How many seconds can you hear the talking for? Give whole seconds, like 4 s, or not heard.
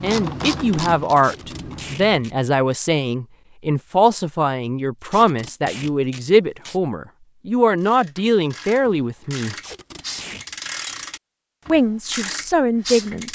11 s.